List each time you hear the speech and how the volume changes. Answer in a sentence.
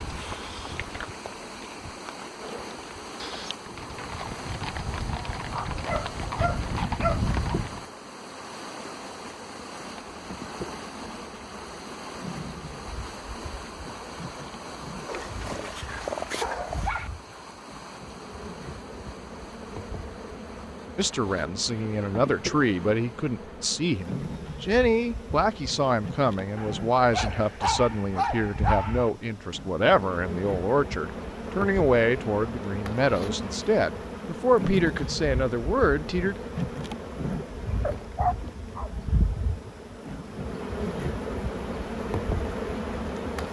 The speech can be heard from 20.9 to 36.4 s, at a steady volume.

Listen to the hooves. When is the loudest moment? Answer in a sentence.
The volume of the hooves peaks at 7 seconds.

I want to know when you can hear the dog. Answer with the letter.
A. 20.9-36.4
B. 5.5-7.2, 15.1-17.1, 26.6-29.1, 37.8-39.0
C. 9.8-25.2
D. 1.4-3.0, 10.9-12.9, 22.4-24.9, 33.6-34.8
B.